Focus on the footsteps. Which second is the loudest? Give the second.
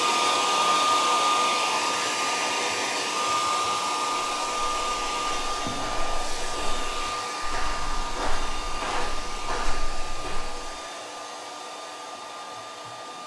9 s.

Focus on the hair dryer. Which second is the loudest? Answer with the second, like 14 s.
1 s.